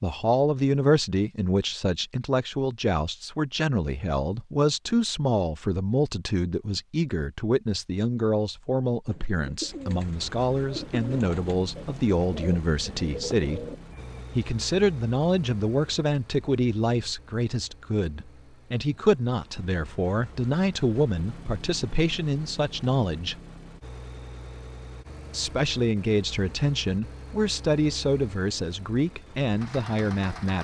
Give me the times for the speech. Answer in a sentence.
The speech can be heard from 0.0 to 13.7 s, from 14.3 to 23.4 s and from 25.3 to 30.5 s.